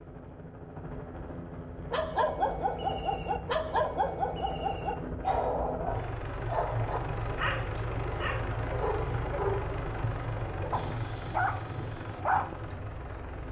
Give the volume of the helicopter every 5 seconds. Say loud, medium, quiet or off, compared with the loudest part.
medium, loud, loud.